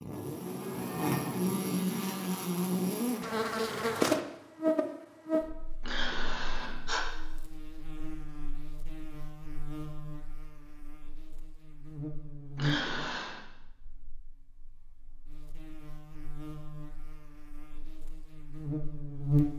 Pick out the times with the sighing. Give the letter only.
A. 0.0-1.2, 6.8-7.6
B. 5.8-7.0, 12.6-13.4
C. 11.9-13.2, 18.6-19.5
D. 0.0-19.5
B.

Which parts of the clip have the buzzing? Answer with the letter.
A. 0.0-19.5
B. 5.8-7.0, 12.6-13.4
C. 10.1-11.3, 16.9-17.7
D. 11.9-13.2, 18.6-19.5
A.